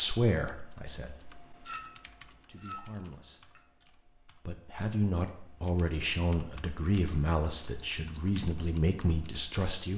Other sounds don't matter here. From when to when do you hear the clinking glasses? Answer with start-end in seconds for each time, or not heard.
1.6-3.6.